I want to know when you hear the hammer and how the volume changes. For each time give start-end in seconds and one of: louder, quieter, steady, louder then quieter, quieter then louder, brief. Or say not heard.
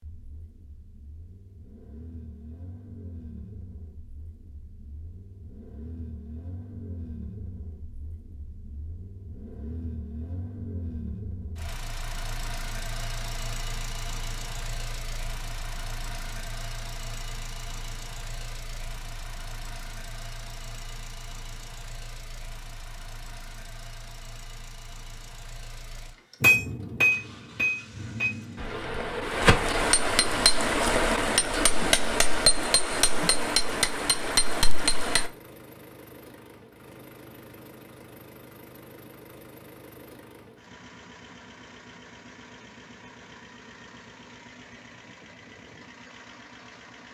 26.4-35.3 steady.